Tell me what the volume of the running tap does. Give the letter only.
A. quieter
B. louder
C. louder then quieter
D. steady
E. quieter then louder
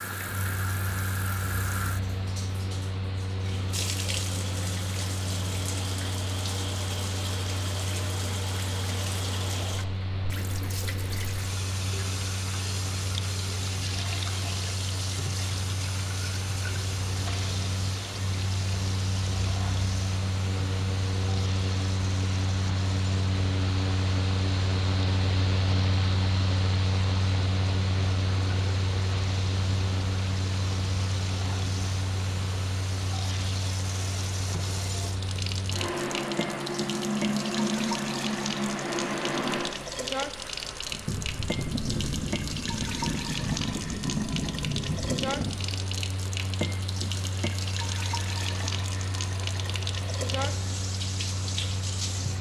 E.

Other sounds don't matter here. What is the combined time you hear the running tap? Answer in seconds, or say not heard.
52 s.